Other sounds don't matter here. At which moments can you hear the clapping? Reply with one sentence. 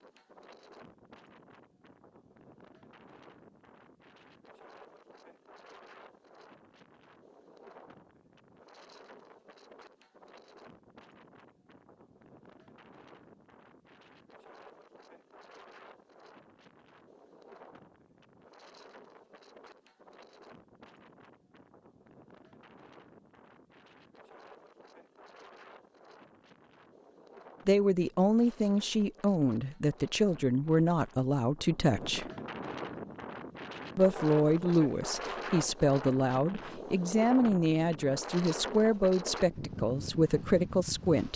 The clapping can't be heard in this clip.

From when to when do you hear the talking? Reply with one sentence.
You can hear the talking from 27.6 to 32.2 s and from 34.0 to 41.3 s.